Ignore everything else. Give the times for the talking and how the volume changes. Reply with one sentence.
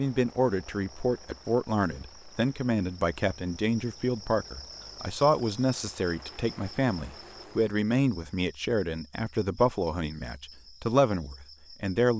You can hear the talking from 0.0 to 12.1 s, at a steady volume.